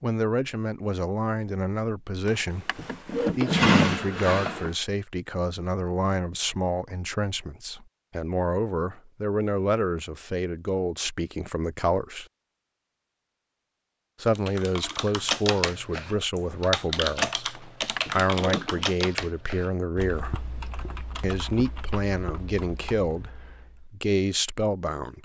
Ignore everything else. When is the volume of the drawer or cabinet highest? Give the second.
4 s.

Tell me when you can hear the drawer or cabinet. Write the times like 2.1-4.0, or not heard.
2.2-4.7, 17.6-18.9.